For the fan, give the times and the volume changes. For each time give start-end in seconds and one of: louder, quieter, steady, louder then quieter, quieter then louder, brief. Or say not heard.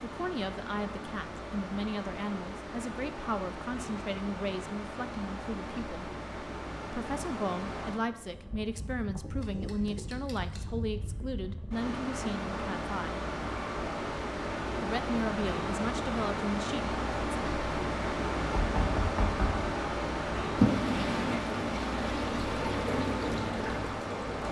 0.0-24.4 louder.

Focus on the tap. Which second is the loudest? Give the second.
21 s.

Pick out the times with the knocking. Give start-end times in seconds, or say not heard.
18.6-19.6.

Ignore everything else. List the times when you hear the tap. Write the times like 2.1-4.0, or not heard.
20.6-24.4.